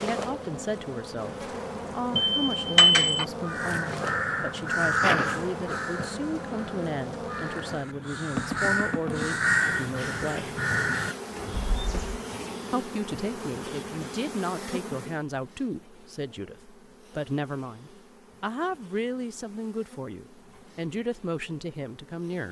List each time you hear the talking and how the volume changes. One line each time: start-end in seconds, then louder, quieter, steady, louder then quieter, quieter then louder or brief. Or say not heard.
0.0-10.6 steady
12.7-22.4 steady.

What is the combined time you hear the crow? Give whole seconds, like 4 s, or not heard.
9 s.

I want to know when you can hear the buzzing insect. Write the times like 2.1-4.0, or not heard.
0.0-22.4.